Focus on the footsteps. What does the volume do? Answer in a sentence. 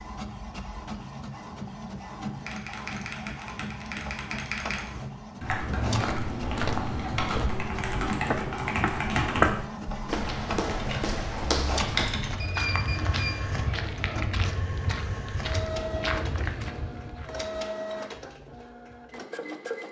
The loudness of the footsteps goes up, then down.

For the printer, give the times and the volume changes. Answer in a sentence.
You can hear the printer from 0.0 to 19.8 s, at a steady volume.